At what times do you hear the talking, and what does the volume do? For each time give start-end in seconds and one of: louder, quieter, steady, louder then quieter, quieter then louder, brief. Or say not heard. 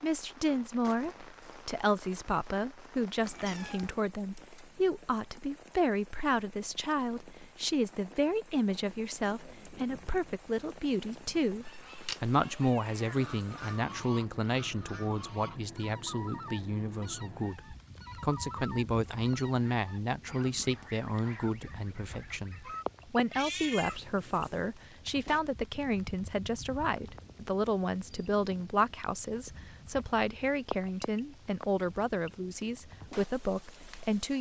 0.0-34.3 steady.